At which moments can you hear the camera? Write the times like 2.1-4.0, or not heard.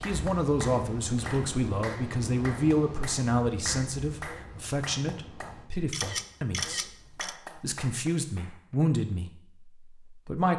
1.1-1.6, 5.9-7.3.